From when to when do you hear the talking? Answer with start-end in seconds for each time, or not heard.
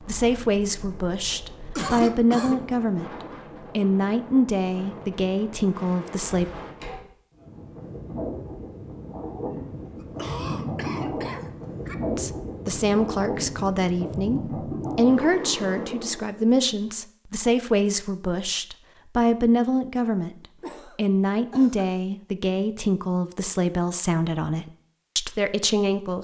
0.1-3.1, 3.8-6.5, 12.1-26.1.